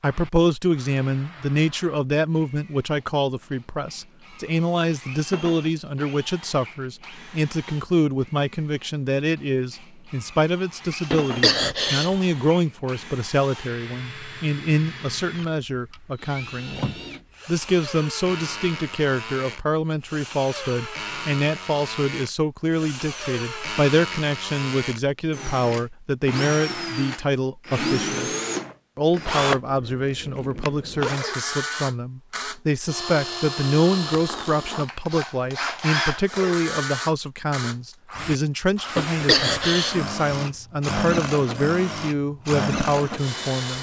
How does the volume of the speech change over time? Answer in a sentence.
The volume of the speech stays about the same.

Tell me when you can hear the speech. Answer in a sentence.
You can hear the speech from 0.0 to 28.3 s and from 28.9 to 43.7 s.